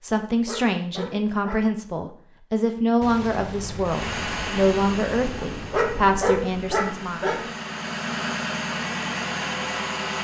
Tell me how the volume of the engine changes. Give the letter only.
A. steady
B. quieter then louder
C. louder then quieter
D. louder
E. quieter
B.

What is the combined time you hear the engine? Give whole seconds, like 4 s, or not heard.
6 s.